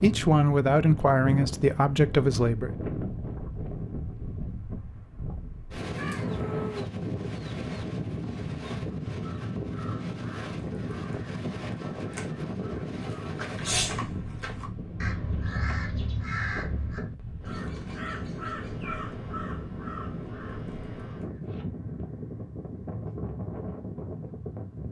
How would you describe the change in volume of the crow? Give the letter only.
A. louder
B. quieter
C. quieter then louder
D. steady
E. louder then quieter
E.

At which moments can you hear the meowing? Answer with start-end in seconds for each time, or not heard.
6.0-6.8.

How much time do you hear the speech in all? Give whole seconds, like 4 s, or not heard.
3 s.